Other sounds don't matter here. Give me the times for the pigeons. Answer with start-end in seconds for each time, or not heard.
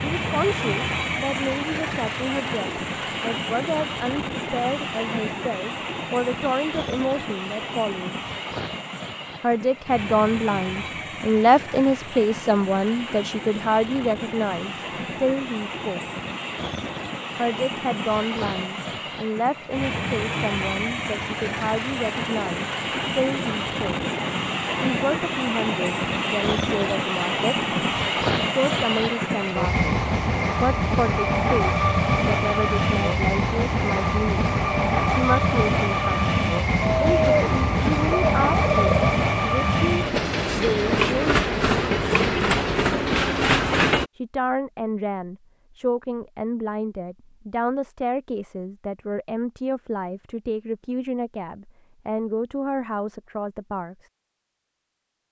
36.8-39.1.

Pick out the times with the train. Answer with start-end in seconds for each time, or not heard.
0.0-44.1.